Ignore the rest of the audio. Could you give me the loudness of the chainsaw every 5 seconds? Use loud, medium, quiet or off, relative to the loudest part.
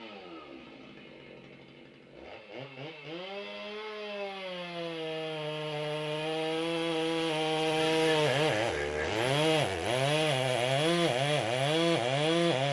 quiet, loud, loud.